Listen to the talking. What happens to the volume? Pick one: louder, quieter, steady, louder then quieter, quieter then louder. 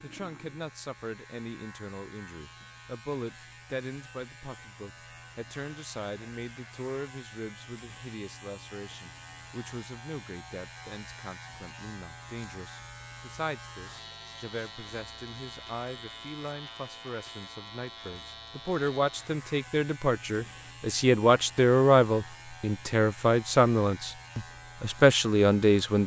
louder.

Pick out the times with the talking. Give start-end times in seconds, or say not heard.
0.0-26.0.